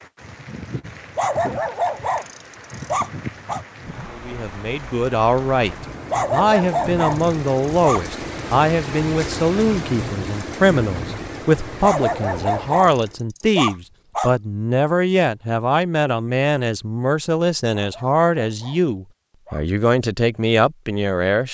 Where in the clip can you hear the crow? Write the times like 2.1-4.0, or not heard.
not heard.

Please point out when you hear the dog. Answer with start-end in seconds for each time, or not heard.
1.1-3.6, 6.1-8.1, 11.8-14.3, 17.8-19.6.